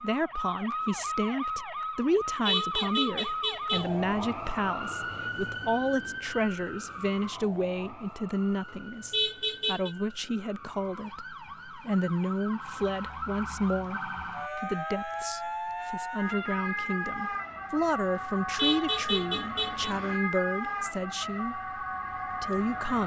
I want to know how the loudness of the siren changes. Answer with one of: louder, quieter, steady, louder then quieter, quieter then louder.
quieter then louder.